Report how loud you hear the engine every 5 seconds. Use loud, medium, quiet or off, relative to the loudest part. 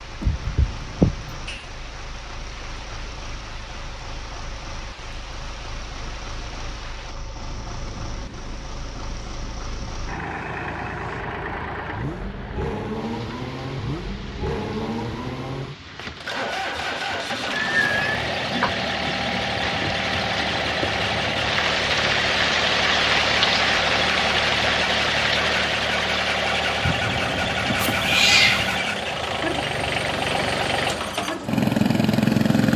quiet, quiet, medium, medium, loud, loud, loud.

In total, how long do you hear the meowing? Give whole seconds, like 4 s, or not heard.
4 s.